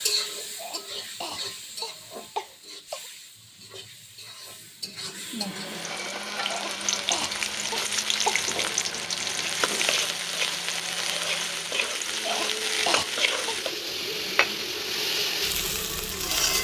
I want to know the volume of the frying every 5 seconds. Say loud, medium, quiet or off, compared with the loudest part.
medium, loud, loud, loud.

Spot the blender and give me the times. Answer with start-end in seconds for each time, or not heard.
5.4-16.5.